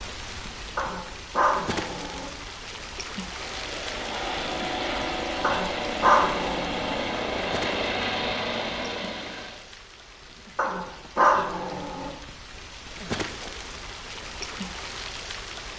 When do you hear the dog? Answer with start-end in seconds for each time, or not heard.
0.8-2.3, 5.4-7.0, 10.6-12.2.